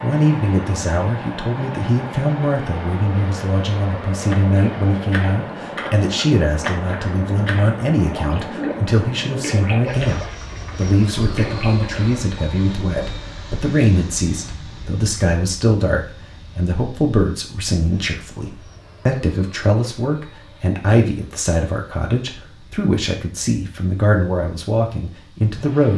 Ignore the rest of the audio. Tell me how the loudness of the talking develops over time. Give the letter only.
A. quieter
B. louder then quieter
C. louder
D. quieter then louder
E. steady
E.